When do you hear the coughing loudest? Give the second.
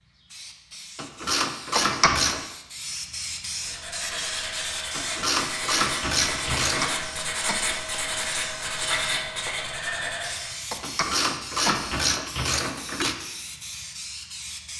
2 s.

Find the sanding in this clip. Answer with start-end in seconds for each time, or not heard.
3.5-10.6.